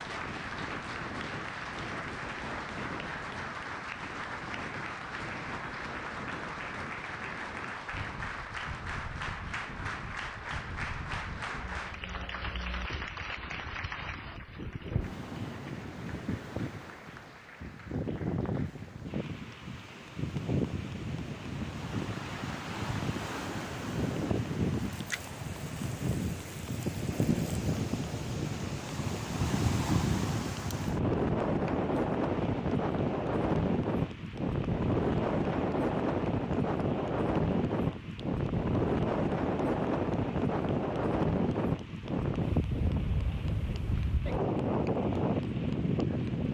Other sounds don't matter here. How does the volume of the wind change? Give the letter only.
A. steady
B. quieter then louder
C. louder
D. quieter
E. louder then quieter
C.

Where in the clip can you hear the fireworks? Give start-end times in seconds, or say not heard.
not heard.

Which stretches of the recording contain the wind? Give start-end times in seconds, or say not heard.
0.0-46.5.